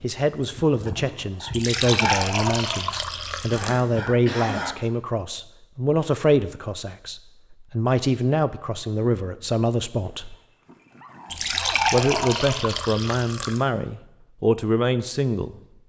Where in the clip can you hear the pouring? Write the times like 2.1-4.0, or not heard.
1.5-3.8, 11.3-13.6.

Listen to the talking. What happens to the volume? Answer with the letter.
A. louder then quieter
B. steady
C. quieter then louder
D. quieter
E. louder
B.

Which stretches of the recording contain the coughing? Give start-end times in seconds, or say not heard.
3.5-4.7.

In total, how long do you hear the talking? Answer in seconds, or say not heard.
14 s.